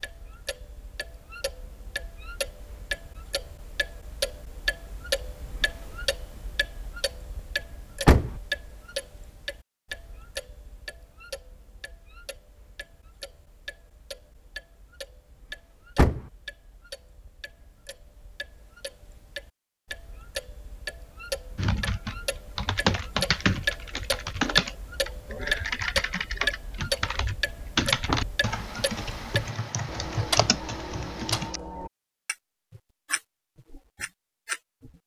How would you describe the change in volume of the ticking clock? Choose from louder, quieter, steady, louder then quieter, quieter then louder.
quieter then louder.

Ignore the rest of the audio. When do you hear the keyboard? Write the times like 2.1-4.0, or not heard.
21.6-31.6.